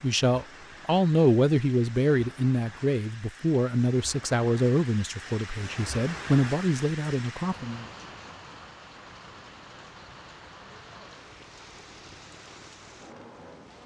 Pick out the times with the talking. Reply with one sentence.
You can hear the talking from 0.0 to 7.8 s.